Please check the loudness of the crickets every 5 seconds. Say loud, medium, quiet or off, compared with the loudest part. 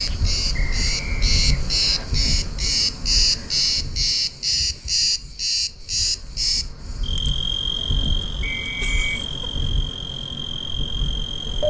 loud, loud, medium.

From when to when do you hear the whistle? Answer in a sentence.
You can hear the whistle from 0.5 to 2.0 s and from 8.4 to 9.2 s.